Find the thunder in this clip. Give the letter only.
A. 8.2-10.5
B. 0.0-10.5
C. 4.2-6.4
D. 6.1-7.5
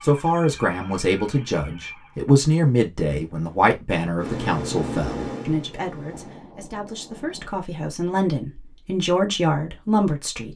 D.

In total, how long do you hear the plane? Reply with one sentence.
You can hear the plane for 2 seconds altogether.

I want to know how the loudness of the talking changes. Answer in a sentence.
The loudness of the talking goes down, then up.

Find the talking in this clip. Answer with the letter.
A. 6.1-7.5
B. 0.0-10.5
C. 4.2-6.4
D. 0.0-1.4
B.